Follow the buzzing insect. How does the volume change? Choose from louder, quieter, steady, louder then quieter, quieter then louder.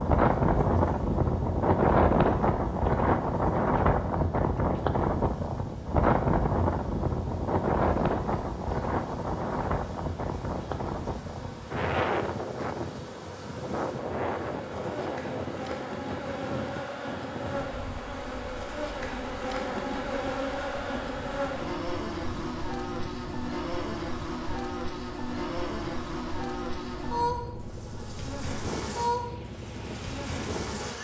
louder.